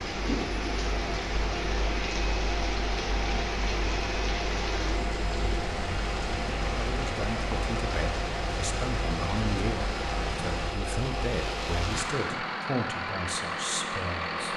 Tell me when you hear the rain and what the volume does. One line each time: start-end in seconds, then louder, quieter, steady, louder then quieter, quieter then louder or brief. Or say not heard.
0.0-12.2 steady.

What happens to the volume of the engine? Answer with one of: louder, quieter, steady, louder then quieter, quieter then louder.
steady.